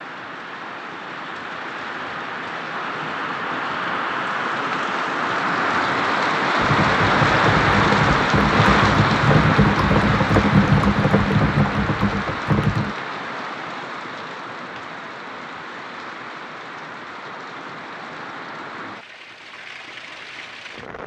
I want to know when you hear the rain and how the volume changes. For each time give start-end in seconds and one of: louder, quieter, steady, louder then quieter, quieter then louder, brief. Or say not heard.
0.0-21.0 louder then quieter.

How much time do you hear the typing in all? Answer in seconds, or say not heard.
6 s.